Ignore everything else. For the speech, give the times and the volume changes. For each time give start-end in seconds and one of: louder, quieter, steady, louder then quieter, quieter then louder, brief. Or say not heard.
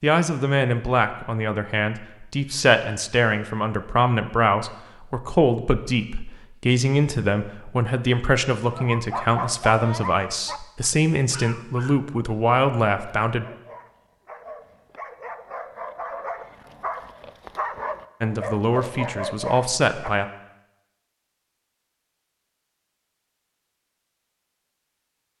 0.0-13.4 steady
18.2-20.2 brief.